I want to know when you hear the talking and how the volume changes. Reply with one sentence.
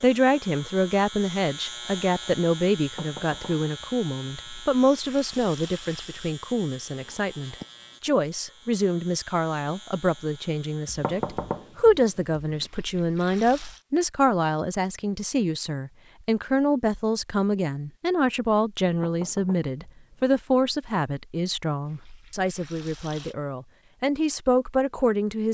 You can hear the talking from 0.0 to 25.4 s, at a steady volume.